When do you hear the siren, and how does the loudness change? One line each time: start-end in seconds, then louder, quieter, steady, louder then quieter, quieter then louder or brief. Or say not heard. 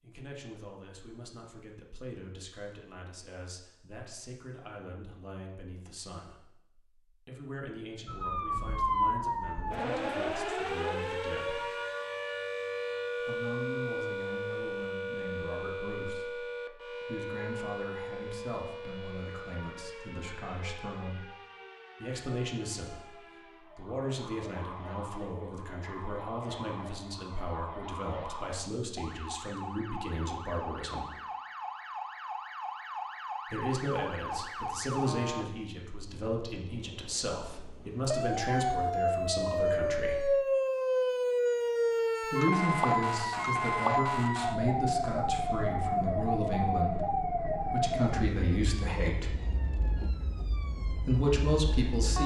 8.1-52.2 quieter then louder.